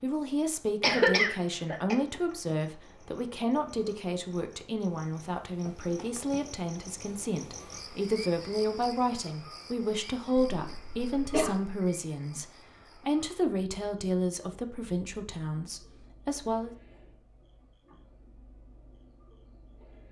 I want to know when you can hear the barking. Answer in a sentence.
The barking can't be heard in this clip.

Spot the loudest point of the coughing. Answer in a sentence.
The volume of the coughing peaks at 1 second.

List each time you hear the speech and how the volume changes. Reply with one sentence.
The speech can be heard from 0.0 to 16.8 s, at a steady volume.